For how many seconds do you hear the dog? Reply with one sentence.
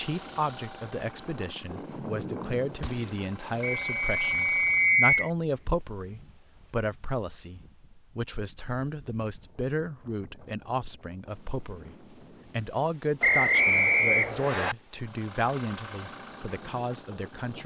The dog can't be heard in this clip.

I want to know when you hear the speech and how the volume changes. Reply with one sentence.
The speech can be heard from 0.0 to 17.6 s, at a steady volume.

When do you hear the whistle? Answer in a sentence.
You can hear the whistle from 3.8 to 5.3 s and from 13.2 to 14.8 s.